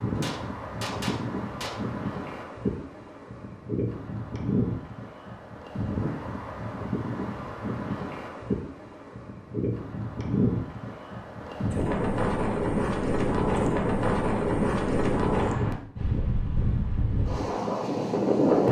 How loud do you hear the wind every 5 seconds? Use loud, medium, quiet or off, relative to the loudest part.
medium, medium, loud, loud.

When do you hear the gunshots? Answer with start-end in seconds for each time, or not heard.
0.1-1.8.